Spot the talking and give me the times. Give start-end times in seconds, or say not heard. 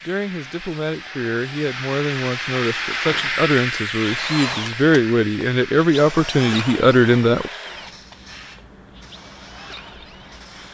0.0-7.5.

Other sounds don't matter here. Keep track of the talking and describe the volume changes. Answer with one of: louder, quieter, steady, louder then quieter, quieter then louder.
louder.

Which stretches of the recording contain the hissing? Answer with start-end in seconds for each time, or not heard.
0.0-10.6.